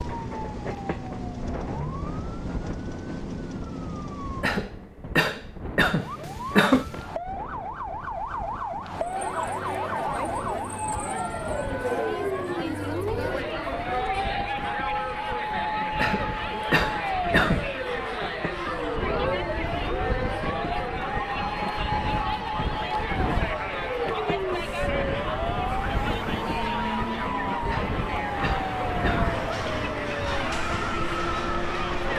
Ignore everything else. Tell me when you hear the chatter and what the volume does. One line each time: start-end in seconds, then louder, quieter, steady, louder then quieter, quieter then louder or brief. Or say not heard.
8.9-32.1 steady.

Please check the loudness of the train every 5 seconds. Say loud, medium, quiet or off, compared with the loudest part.
medium, medium, medium, loud, loud, loud, loud.